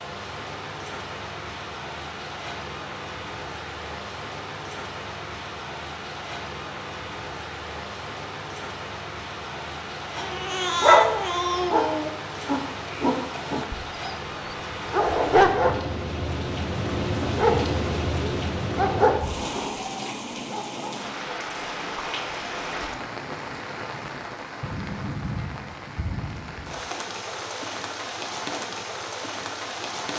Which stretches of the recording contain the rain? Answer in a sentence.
The rain can be heard from 0.0 to 30.1 s.